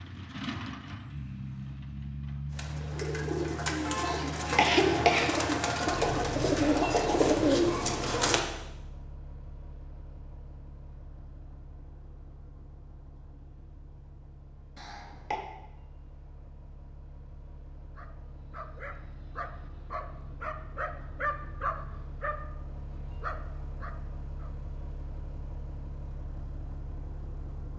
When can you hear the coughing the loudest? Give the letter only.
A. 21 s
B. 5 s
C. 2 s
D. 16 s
B.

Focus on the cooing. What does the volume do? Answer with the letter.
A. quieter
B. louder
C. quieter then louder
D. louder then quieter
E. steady
B.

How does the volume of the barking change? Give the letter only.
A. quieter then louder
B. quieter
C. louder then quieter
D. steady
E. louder
C.